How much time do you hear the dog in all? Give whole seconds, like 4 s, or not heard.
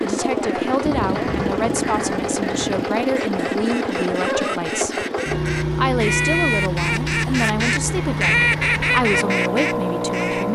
not heard.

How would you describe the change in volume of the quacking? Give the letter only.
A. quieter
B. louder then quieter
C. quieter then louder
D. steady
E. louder
E.